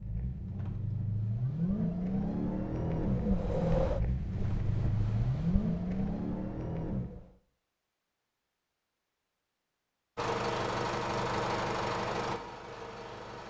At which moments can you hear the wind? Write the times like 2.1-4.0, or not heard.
0.0-7.3.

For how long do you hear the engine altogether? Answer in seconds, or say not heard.
10 s.